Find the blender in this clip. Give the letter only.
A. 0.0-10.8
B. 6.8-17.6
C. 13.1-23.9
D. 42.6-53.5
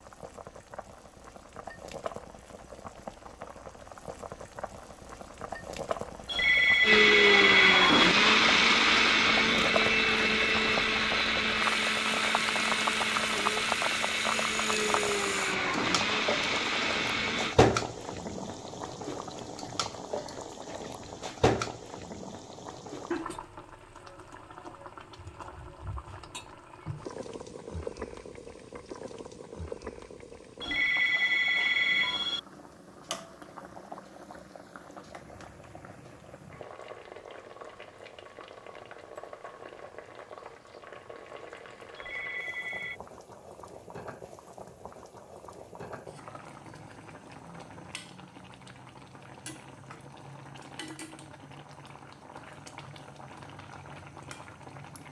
B.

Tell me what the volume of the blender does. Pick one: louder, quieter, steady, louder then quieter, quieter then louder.
quieter.